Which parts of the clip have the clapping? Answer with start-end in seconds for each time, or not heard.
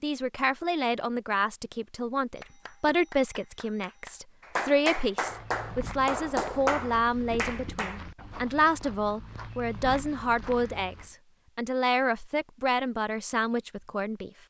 2.4-8.0.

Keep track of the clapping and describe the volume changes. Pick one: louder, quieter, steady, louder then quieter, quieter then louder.
louder.